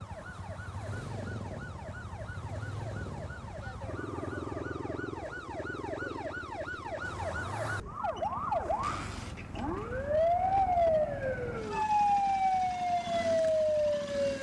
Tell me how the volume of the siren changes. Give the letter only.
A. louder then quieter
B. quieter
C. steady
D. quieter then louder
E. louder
E.